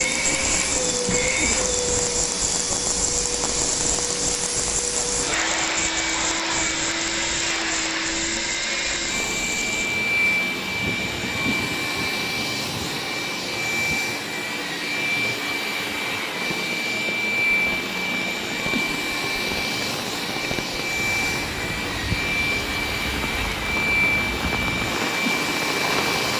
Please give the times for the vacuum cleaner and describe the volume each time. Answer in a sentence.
You can hear the vacuum cleaner from 0.0 to 26.3 s, at a steady volume.